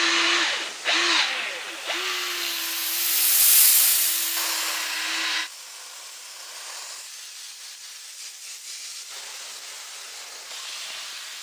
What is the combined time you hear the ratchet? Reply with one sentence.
The ratchet can't be heard in this clip.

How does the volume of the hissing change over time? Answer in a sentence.
The loudness of the hissing goes up, then down.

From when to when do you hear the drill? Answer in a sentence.
The drill can be heard from 0.0 to 5.5 s.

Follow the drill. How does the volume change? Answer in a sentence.
The volume of the drill goes down, then up.